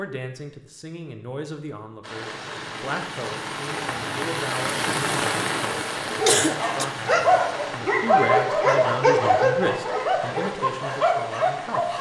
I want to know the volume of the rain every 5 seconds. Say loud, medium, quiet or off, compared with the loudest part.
loud, loud, medium.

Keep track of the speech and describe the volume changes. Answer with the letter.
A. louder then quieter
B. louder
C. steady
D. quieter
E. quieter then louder
A.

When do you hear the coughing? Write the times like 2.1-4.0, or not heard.
6.2-6.8.